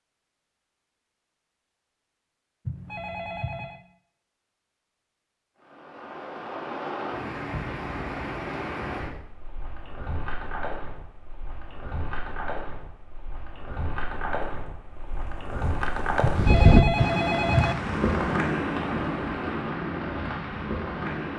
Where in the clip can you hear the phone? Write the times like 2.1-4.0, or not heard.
2.6-3.8, 16.2-17.8.